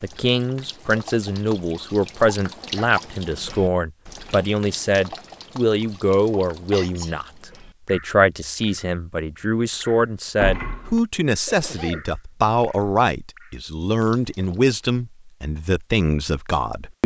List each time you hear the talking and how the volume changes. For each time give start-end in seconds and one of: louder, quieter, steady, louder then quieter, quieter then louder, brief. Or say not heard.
0.0-17.0 steady.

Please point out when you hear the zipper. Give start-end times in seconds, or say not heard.
not heard.